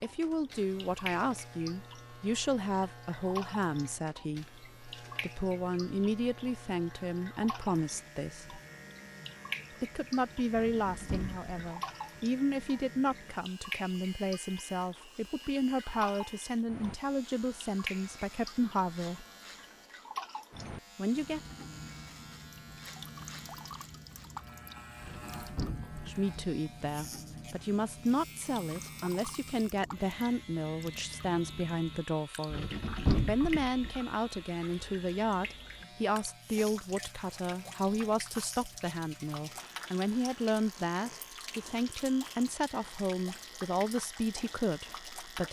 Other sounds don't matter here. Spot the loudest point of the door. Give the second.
33 s.